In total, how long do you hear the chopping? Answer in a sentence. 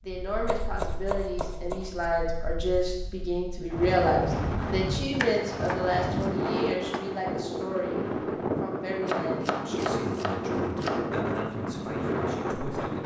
You can hear the chopping for 6 seconds altogether.